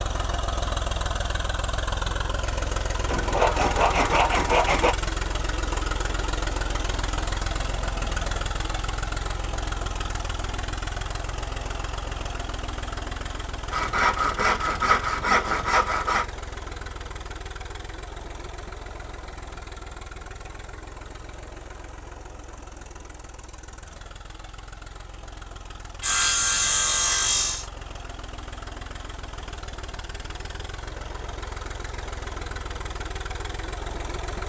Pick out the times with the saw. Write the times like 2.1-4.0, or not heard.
3.1-5.0, 13.7-16.2, 26.0-27.7.